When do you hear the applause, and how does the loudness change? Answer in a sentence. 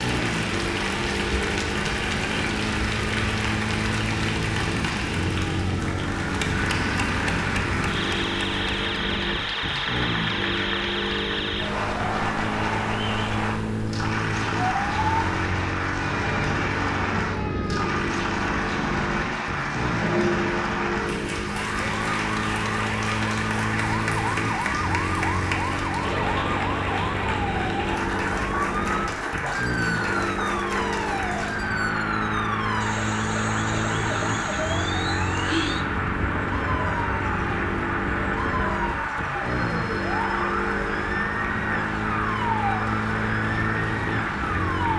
You can hear the applause from 0.0 to 44.9 s, at a steady volume.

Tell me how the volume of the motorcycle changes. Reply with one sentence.
The loudness of the motorcycle stays about the same.